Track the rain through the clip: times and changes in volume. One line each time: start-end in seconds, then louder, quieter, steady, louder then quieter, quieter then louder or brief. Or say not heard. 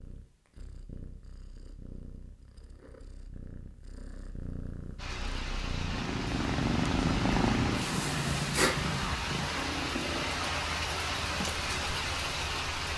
5.0-12.9 louder.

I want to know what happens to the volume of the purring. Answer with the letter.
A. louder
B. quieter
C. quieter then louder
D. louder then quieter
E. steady
D.